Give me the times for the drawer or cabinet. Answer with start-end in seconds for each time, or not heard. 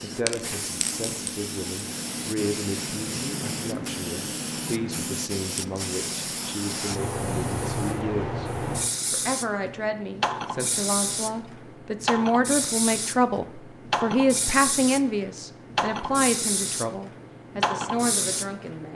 not heard.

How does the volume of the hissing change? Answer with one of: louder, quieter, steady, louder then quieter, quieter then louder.
steady.